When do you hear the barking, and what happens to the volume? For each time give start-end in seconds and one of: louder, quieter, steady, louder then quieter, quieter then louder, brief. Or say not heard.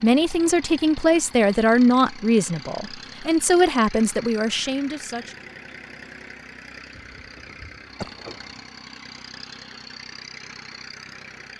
not heard.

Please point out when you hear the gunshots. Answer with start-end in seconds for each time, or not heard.
7.0-8.7.